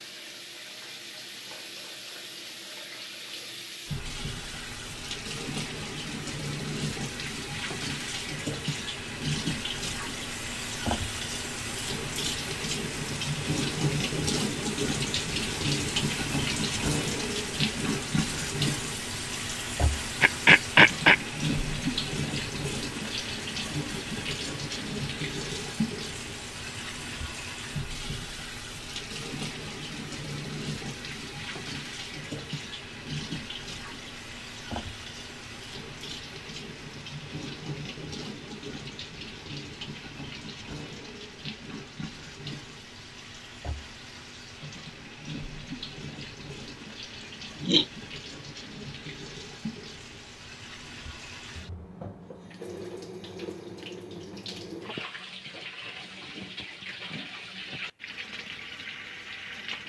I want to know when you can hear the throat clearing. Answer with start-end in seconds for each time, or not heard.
20.2-21.1, 47.2-47.9.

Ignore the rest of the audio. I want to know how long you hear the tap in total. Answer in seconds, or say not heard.
60 s.